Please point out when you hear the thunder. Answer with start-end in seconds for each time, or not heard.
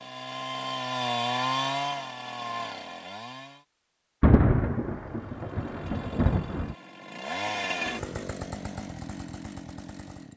4.2-6.8.